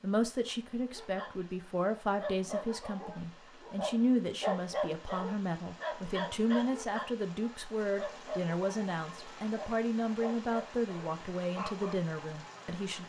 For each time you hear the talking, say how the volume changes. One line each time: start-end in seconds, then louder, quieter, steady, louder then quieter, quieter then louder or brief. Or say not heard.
0.0-13.0 steady.